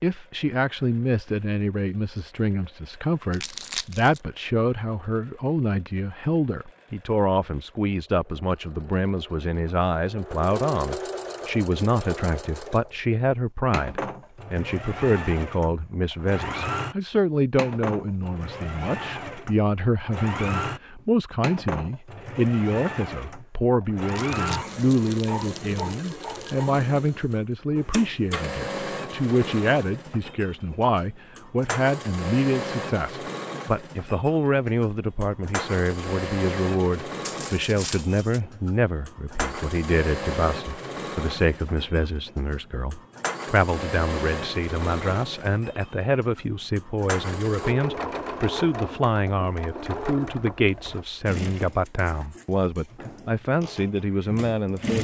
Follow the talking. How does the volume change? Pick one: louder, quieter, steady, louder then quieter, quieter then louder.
steady.